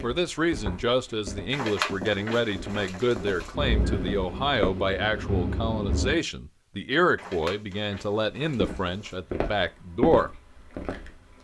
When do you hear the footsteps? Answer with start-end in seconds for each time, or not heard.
0.0-4.8, 8.4-11.3.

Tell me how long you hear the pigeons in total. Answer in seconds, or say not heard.
4 s.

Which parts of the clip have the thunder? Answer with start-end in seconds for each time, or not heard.
3.5-6.2.